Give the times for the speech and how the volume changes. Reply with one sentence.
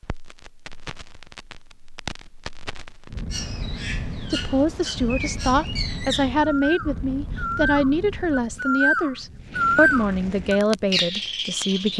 The speech can be heard from 4.3 to 11.9 s, at a steady volume.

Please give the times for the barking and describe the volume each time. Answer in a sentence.
The barking can't be heard in this clip.